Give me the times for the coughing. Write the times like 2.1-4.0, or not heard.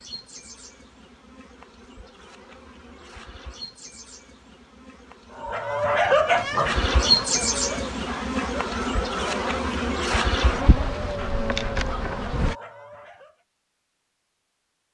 not heard.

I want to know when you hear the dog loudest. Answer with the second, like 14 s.
6 s.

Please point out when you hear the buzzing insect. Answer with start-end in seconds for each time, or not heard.
0.0-12.6.